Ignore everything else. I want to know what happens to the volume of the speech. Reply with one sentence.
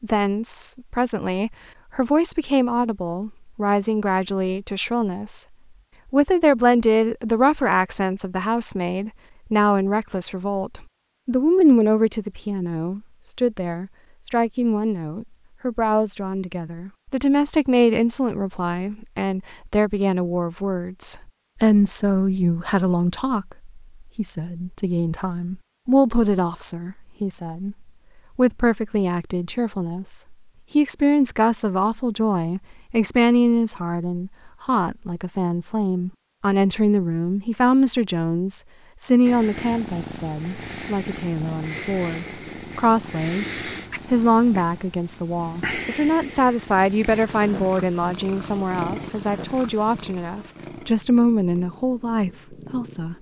The loudness of the speech stays about the same.